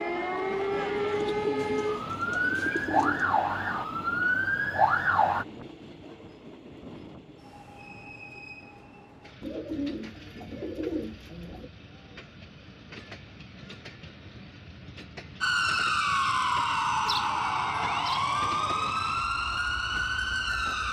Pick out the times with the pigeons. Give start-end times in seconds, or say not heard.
1.1-3.3, 9.4-11.7, 17.1-18.9.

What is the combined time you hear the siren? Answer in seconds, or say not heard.
11 s.